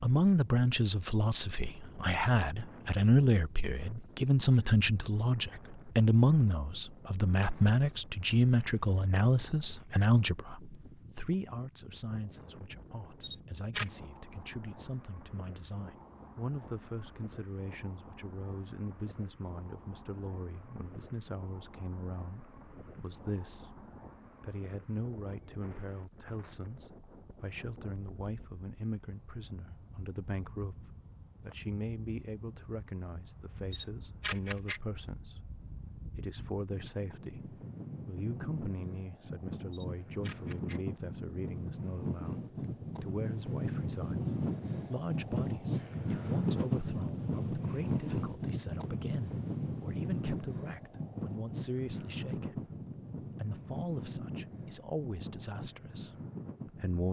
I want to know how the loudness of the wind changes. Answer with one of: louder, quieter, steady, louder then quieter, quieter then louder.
louder.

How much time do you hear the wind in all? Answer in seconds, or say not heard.
57 s.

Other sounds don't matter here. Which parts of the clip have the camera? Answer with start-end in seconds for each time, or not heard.
13.2-13.8, 33.7-34.8, 39.7-40.8.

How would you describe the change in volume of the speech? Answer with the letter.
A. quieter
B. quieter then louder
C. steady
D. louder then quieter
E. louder
A.